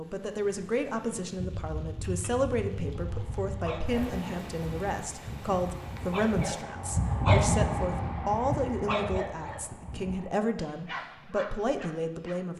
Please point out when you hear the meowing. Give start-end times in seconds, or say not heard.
not heard.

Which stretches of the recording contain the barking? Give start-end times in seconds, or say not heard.
2.9-12.4.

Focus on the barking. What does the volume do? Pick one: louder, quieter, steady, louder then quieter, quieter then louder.
louder then quieter.